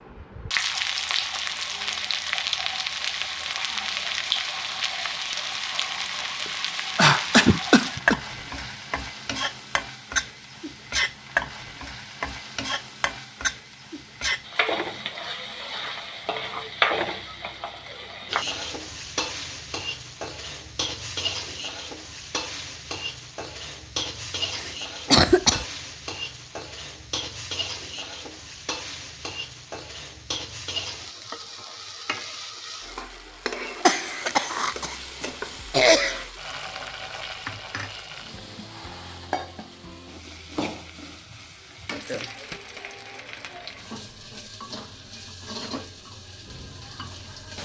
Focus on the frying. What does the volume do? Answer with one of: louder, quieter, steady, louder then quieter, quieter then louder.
quieter.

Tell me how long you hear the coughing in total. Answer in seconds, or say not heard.
5 s.